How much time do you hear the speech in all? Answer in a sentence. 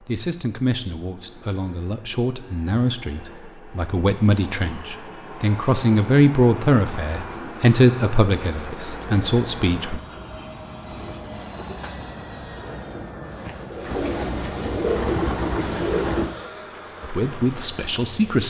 You can hear the speech for 11 seconds altogether.